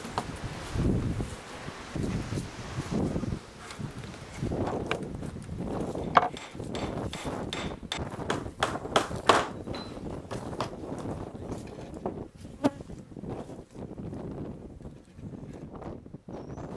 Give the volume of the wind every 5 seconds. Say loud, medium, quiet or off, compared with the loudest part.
loud, loud, medium, medium.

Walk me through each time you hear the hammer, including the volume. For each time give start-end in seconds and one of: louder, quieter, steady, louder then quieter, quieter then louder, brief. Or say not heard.
6.0-11.1 louder then quieter.